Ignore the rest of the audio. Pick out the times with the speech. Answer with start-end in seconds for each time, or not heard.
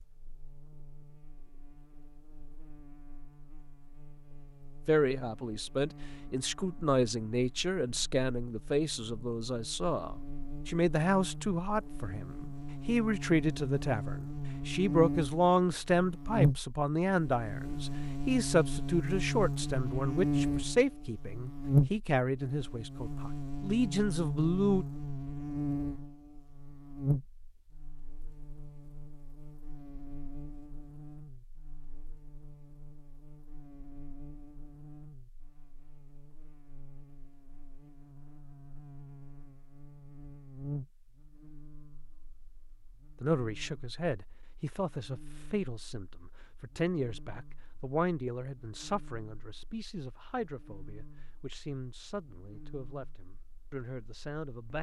4.8-24.9, 43.2-54.7.